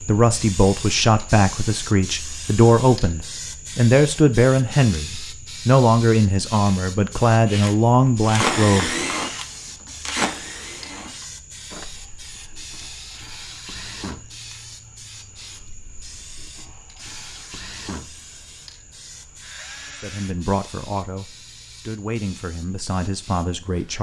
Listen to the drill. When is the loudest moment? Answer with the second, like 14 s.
9 s.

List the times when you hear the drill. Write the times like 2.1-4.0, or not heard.
7.5-20.4.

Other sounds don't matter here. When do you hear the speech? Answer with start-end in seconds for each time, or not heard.
0.0-8.9, 20.0-23.9.